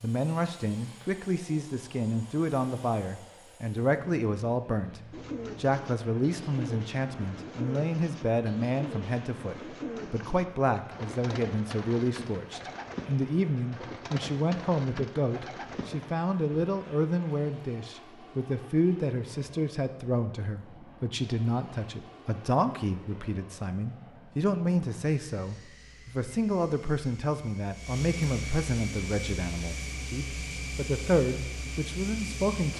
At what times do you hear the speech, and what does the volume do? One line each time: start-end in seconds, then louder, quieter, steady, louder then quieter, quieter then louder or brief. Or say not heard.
0.0-32.7 steady.